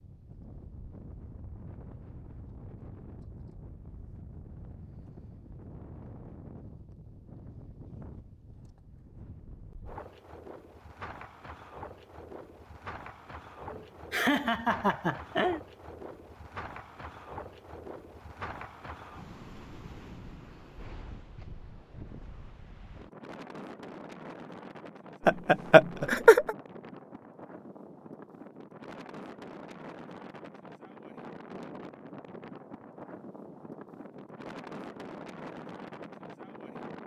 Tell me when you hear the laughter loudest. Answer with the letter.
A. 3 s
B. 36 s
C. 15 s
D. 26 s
D.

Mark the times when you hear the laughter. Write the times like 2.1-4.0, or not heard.
13.7-15.6, 25.2-26.6.